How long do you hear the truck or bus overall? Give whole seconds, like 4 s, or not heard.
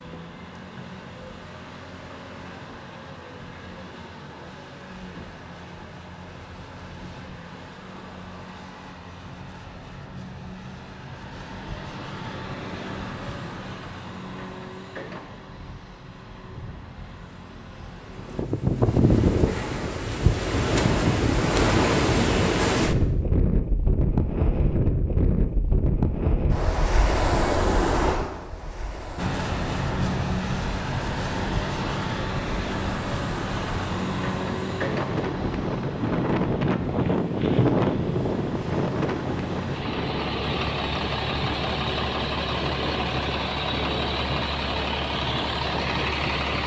36 s.